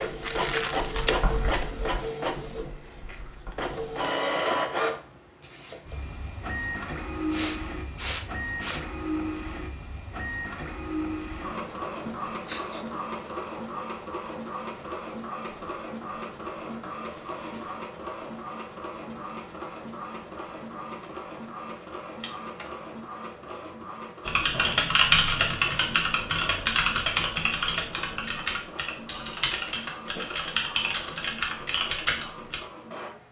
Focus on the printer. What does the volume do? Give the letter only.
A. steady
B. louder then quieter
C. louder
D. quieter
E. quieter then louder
D.